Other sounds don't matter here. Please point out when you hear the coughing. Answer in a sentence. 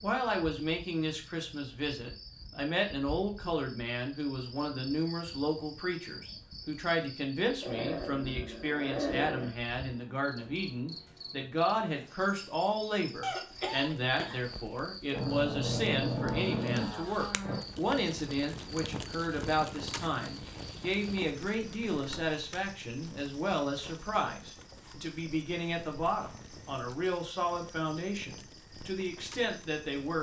You can hear the coughing from 13.2 to 14.4 s.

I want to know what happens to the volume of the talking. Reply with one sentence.
The loudness of the talking stays about the same.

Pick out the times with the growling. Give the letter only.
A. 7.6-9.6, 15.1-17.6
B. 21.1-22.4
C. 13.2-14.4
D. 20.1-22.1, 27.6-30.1
A.